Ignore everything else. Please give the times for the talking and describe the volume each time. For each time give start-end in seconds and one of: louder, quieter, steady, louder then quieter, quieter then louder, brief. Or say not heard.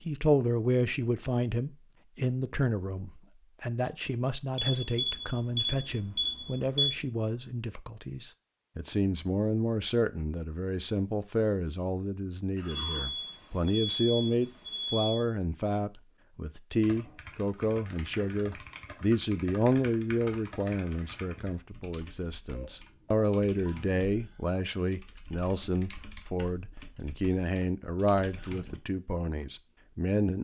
0.0-30.3 steady.